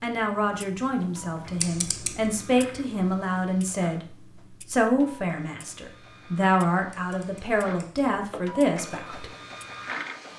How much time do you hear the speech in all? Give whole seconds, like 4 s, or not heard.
9 s.